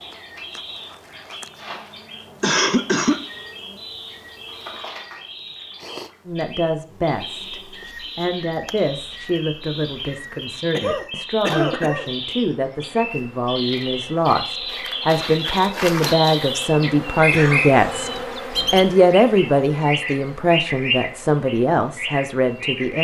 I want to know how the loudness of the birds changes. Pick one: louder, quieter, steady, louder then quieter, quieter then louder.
louder.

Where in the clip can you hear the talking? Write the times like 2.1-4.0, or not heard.
6.2-18.1, 18.7-23.0.